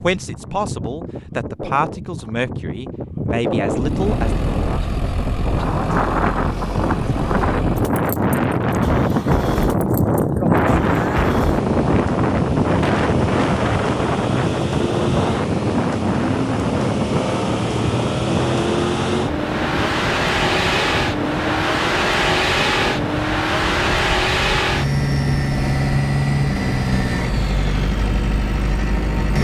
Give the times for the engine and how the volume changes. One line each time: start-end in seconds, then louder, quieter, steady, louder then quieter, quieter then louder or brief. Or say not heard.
3.8-29.3 louder.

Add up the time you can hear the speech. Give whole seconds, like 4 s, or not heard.
5 s.